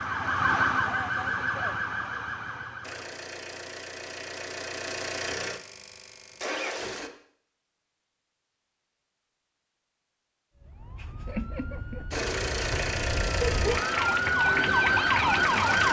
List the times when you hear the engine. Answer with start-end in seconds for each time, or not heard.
2.8-7.1, 12.1-15.8.